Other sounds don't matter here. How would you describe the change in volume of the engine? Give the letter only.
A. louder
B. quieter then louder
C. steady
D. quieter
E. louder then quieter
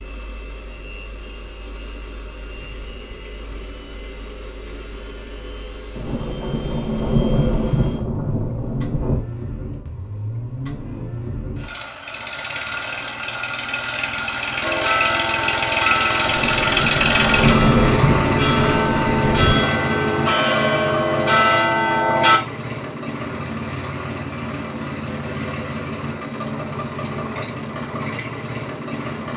E.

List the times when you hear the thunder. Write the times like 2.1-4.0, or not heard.
6.0-9.2, 16.2-19.6.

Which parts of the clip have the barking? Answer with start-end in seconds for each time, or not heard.
not heard.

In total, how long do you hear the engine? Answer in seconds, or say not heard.
29 s.